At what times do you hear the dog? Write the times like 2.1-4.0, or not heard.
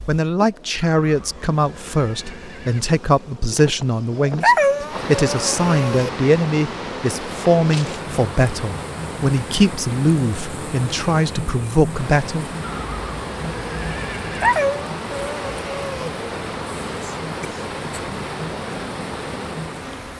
4.4-6.1, 14.4-16.1.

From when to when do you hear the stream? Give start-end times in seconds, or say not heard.
4.8-20.1.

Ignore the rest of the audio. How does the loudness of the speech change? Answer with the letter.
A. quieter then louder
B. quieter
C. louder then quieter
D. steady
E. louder
D.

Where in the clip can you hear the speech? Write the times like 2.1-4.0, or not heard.
0.1-12.4.